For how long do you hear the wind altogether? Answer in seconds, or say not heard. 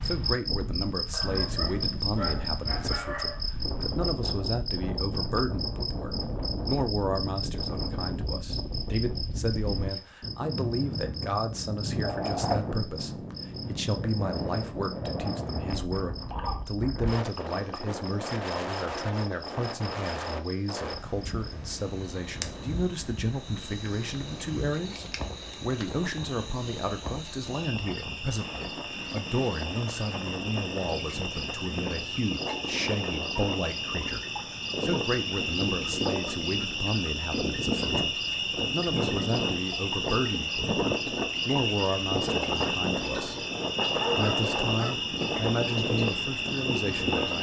47 s.